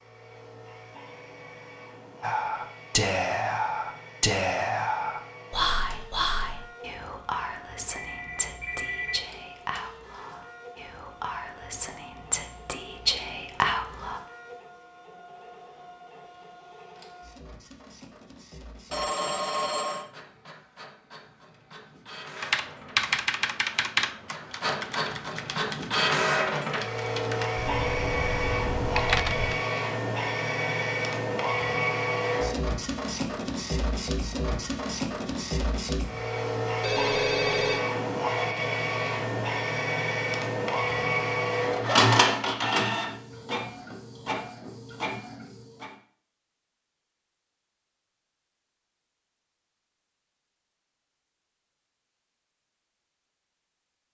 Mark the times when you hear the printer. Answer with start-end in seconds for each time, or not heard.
0.0-45.9.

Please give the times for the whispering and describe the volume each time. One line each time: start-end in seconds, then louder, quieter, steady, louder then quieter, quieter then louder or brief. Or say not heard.
2.2-14.2 quieter then louder.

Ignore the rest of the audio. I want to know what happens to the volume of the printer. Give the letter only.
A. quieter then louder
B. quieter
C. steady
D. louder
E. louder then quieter
D.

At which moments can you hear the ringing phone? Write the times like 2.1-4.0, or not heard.
7.9-9.2, 18.9-20.1, 36.8-37.8.